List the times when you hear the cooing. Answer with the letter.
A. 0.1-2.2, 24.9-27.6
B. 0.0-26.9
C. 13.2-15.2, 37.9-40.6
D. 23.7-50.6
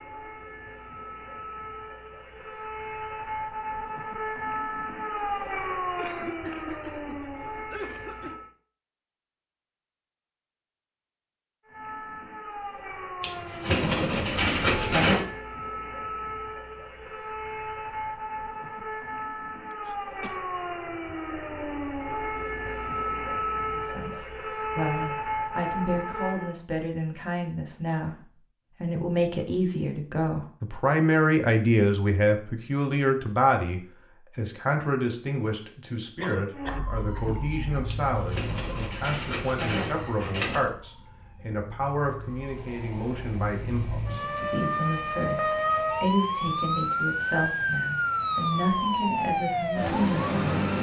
C.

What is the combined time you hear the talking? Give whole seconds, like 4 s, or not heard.
27 s.